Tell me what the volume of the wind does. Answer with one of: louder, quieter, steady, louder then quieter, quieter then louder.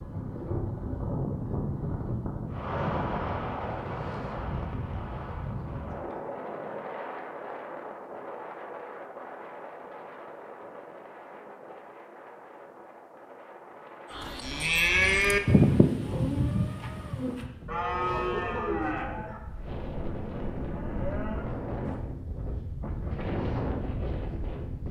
quieter then louder.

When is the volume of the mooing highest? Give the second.
16 s.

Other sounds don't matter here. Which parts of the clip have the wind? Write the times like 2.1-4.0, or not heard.
0.0-24.8.